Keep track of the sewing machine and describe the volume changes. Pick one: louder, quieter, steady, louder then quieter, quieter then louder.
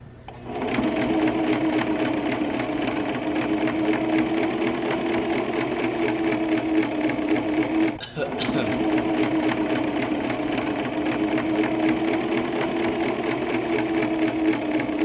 steady.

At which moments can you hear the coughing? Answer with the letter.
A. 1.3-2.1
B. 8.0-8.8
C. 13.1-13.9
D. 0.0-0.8
B.